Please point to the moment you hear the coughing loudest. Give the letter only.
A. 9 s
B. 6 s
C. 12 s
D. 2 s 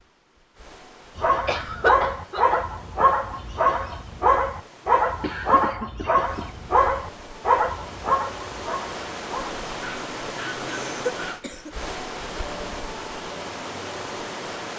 D.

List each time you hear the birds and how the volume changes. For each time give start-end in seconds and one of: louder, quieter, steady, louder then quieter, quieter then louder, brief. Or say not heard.
not heard.